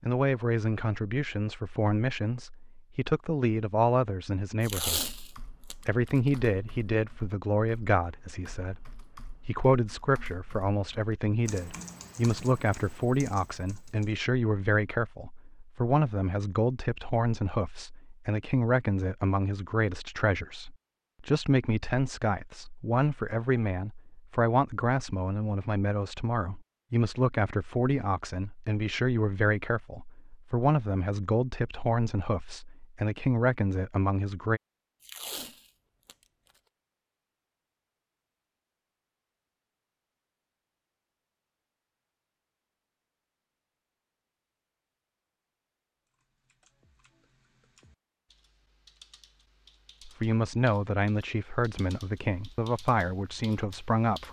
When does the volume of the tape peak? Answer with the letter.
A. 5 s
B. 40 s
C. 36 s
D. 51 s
A.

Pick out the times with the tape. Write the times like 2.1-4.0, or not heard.
4.6-6.4, 35.0-36.1.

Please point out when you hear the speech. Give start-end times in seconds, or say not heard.
0.0-34.6, 50.0-54.2.